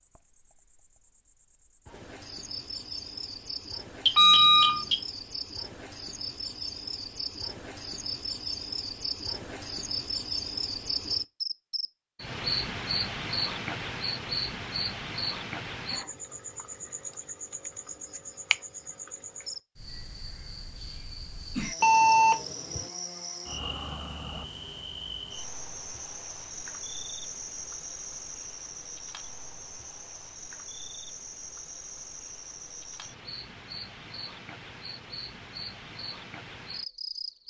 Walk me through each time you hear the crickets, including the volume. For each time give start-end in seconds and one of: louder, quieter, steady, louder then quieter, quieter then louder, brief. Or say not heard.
0.0-37.4 louder then quieter.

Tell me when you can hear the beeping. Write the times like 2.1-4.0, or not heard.
4.0-5.0, 21.8-22.9.